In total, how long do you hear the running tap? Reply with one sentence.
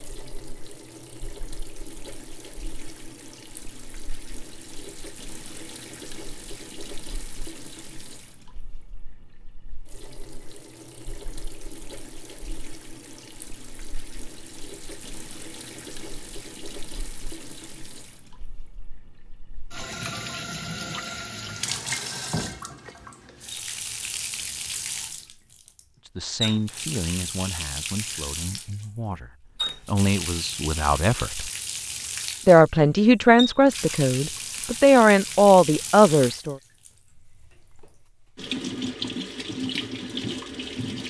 You can hear the running tap for 41 seconds altogether.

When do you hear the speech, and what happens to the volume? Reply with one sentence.
The speech can be heard from 26.1 to 31.5 s, getting quieter then louder; and from 32.5 to 36.5 s, getting quieter then louder.